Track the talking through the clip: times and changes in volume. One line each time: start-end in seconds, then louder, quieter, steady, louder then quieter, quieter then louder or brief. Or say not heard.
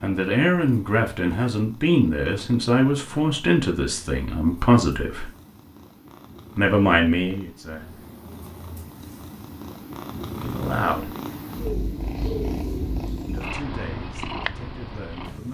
0.0-5.3 steady
6.5-7.8 brief
10.4-11.1 brief
13.2-15.4 brief.